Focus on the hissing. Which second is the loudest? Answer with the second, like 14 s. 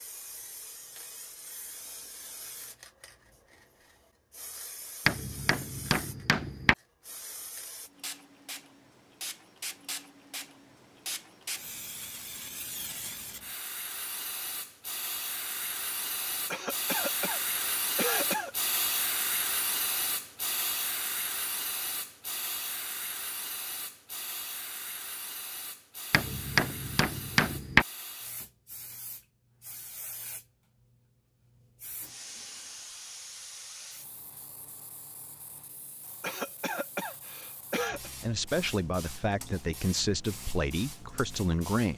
19 s.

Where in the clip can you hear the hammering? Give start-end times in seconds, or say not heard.
5.0-6.8, 26.1-27.9.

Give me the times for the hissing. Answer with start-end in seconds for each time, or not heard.
0.0-41.9.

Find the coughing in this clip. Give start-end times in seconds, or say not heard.
16.5-18.5, 36.2-38.1.